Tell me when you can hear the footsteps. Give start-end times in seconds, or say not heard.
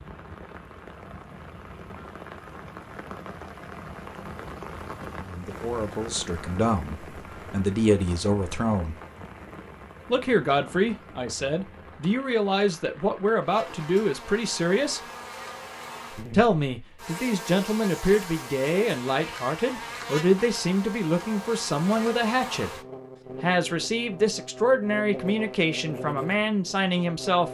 not heard.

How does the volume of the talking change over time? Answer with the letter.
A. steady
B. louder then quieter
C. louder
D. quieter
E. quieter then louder
A.